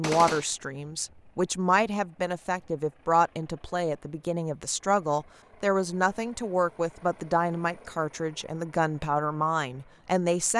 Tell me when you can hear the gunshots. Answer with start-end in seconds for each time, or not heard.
0.0-0.5.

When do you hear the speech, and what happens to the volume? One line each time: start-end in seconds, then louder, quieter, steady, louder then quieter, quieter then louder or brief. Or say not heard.
0.0-10.5 steady.